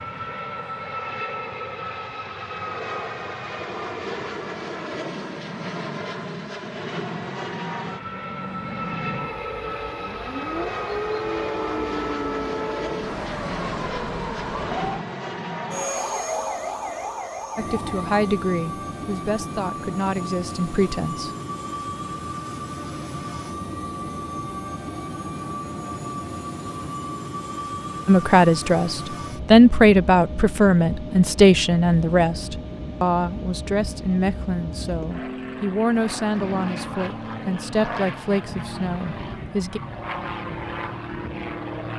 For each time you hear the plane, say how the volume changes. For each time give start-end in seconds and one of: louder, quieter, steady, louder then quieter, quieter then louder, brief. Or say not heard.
0.0-41.9 steady.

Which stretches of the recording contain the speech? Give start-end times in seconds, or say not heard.
17.6-21.3, 28.1-39.8.